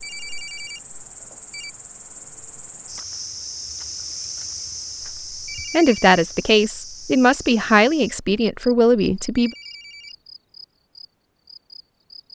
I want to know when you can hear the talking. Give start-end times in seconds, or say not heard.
5.7-9.5.